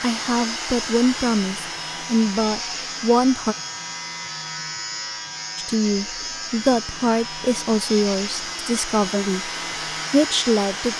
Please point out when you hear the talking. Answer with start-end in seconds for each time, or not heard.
0.0-3.5, 5.5-9.5, 10.1-10.9.